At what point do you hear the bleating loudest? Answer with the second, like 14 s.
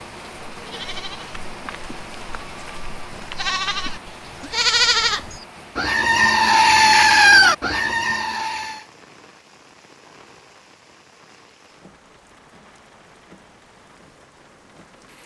7 s.